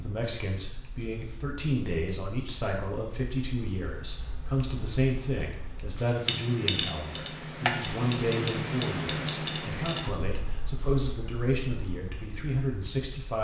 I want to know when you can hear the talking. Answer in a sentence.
The talking can be heard from 0.0 to 13.4 s.